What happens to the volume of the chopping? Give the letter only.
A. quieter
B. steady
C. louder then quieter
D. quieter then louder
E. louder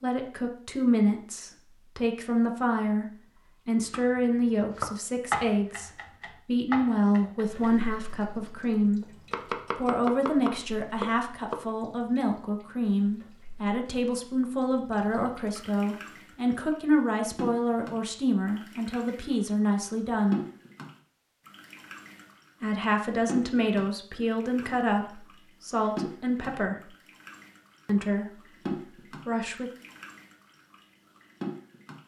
D.